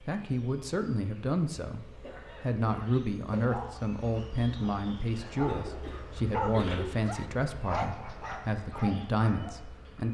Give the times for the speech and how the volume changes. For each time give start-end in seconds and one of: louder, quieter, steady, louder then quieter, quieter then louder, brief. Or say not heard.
0.1-10.0 steady.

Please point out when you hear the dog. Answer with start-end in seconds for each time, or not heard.
3.4-9.5.